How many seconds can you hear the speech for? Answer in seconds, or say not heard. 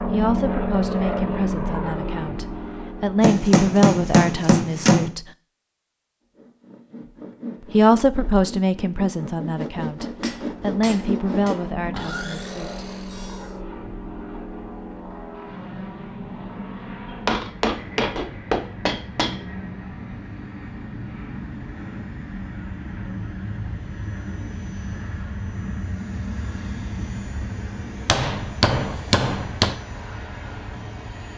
10 s.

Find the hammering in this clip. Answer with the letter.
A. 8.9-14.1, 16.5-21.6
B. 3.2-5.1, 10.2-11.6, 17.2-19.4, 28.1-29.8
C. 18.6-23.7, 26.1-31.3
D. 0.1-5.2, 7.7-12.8
B.